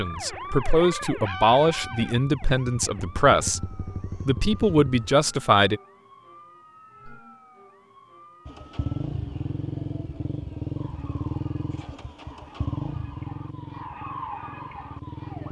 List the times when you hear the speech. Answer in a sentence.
You can hear the speech from 0.0 to 5.8 s.